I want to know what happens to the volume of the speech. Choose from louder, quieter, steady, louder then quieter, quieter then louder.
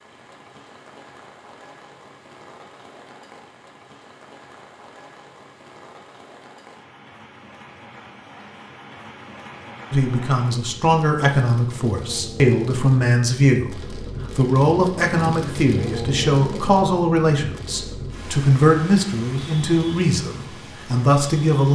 steady.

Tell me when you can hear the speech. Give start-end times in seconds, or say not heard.
9.9-21.6.